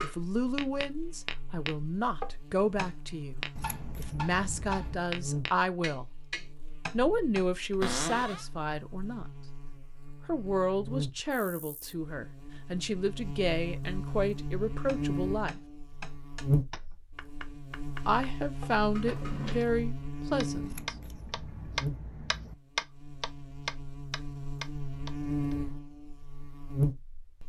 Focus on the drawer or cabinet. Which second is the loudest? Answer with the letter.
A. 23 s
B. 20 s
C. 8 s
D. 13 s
C.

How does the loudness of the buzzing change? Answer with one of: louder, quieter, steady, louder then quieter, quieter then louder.
louder.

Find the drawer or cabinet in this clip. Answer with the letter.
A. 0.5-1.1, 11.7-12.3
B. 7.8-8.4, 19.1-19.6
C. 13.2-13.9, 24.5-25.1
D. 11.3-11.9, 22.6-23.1
B.